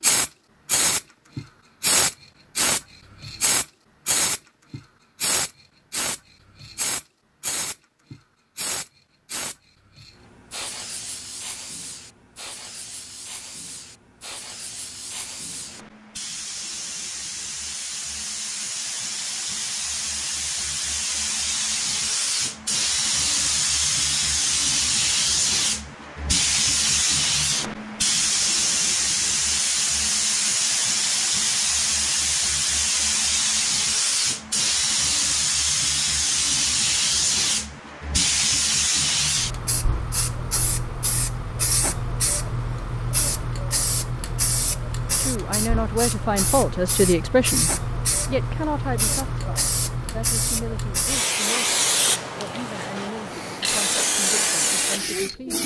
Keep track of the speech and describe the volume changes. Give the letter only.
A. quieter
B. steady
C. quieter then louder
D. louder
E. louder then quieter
A.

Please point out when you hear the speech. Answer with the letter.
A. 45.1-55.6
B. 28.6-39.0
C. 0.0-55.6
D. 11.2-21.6
A.